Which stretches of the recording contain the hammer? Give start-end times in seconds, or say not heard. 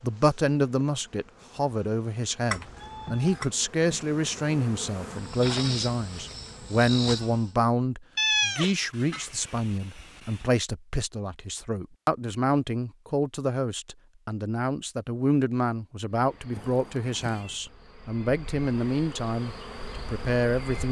not heard.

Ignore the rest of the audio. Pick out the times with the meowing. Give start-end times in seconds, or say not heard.
2.5-3.5, 8.2-10.4, 16.5-17.6.